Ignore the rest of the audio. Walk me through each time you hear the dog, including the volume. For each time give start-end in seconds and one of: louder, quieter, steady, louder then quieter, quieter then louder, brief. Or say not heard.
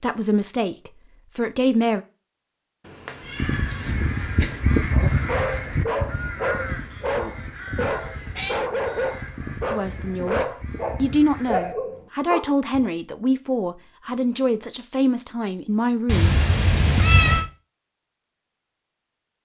4.9-12.9 steady.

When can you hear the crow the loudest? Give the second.
5 s.